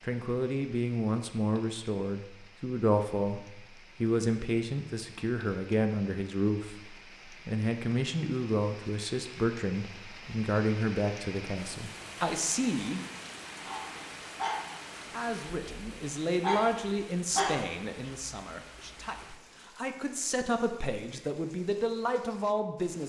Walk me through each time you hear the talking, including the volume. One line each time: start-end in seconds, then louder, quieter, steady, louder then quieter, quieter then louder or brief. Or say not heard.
0.0-13.1 steady
15.1-23.0 quieter then louder.